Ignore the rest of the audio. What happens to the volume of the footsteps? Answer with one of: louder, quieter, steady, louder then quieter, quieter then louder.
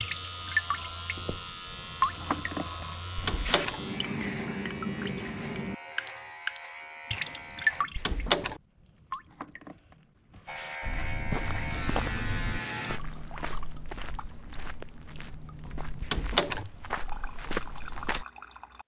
quieter then louder.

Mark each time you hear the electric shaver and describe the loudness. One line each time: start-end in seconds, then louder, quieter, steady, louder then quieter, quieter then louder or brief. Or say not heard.
0.0-7.8 steady
10.4-13.0 brief.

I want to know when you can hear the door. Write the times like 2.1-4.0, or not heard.
3.1-3.8, 8.0-8.6, 16.0-16.6.